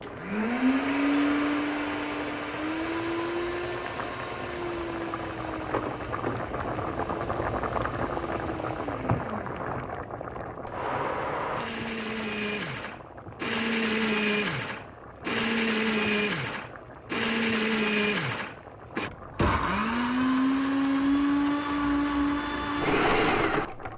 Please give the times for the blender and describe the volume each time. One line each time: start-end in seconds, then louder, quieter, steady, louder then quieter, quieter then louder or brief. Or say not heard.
0.0-23.9 quieter then louder.